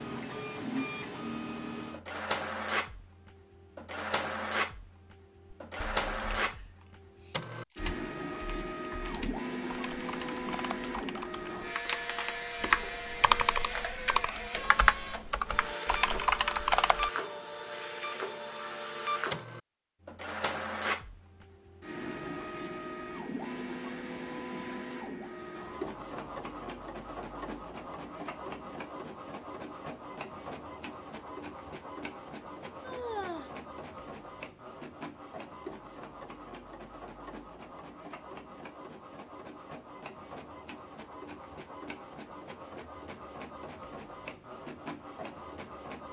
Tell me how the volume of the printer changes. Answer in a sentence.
The loudness of the printer goes down.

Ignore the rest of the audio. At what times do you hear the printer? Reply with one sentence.
The printer can be heard from 0.0 to 46.0 s.